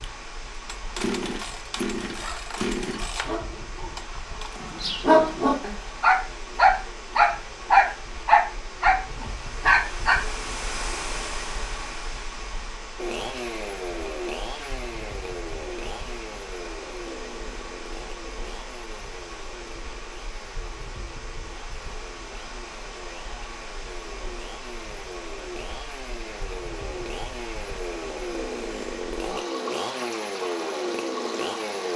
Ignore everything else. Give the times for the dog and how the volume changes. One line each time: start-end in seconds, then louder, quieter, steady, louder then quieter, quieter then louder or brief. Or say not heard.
2.0-10.2 louder.